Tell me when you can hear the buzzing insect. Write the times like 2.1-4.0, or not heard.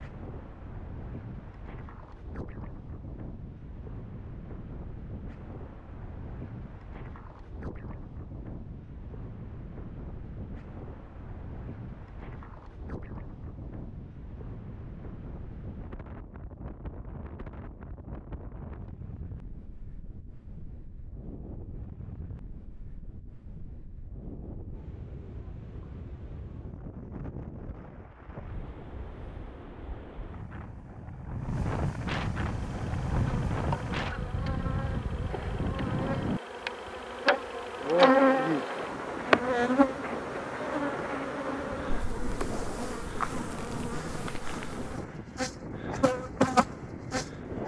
32.5-47.6.